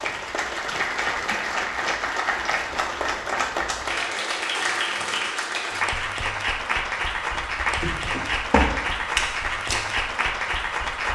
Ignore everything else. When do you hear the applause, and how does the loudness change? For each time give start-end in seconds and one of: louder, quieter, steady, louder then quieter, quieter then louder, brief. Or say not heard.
0.0-11.0 steady.